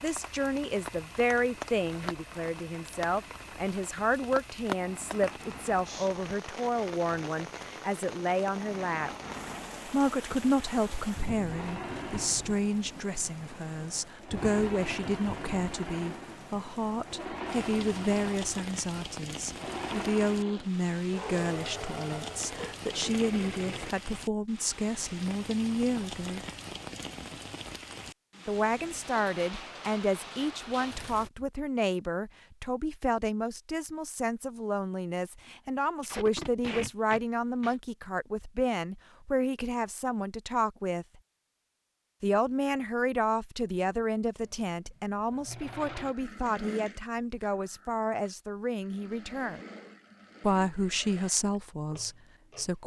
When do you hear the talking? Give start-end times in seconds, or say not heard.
0.0-9.1, 9.8-26.4, 28.4-41.0, 42.2-49.6, 50.4-52.8.